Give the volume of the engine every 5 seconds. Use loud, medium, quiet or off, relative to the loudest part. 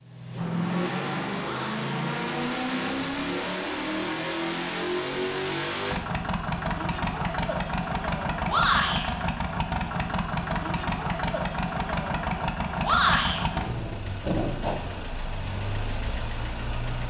loud, loud, loud, medium.